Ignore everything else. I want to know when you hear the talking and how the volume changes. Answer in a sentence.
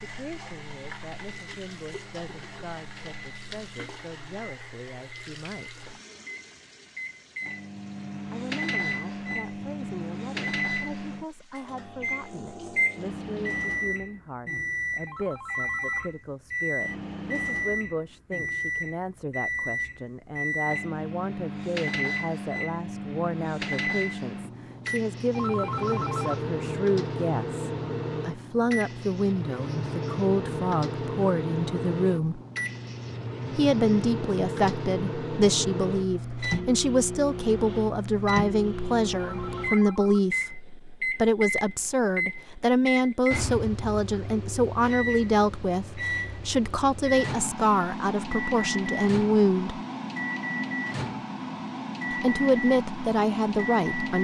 You can hear the talking from 0.0 to 5.9 s, at a steady volume; from 8.2 to 32.4 s, getting louder; from 33.5 to 49.8 s, at a steady volume; and briefly from 52.1 to 54.1 s.